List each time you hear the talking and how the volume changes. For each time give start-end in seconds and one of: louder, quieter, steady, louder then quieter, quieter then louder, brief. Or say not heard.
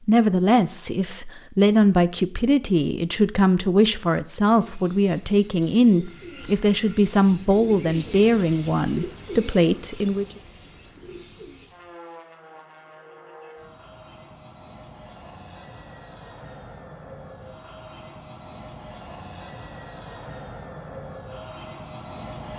0.1-10.2 steady.